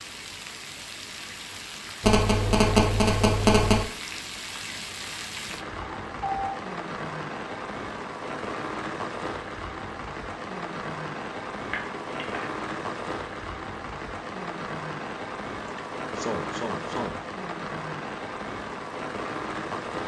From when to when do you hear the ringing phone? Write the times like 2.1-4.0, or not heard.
2.0-3.9, 11.7-12.4.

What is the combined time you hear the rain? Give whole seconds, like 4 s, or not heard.
20 s.